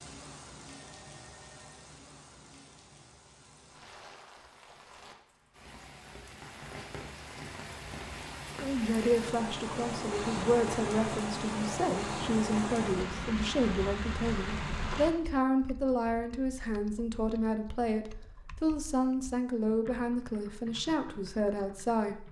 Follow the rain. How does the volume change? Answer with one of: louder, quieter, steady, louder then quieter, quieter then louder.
louder.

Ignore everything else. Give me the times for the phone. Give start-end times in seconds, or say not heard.
0.7-1.9.